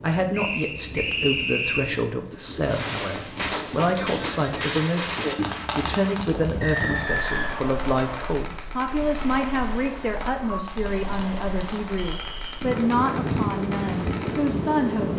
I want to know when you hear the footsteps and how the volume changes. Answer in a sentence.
The footsteps can't be heard in this clip.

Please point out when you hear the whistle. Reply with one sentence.
You can hear the whistle from 0.3 to 1.9 s, from 6.6 to 8.3 s and from 11.9 to 12.6 s.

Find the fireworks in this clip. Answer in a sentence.
The fireworks can be heard from 2.6 to 14.6 s.